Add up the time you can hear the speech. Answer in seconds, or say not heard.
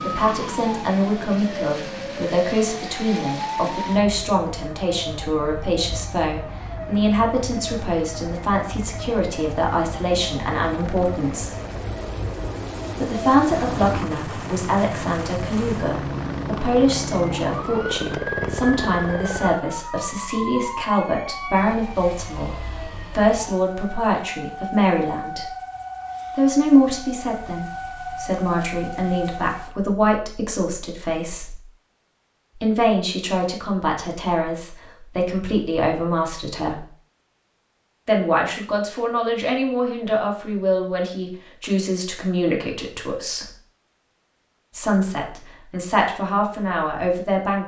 42 s.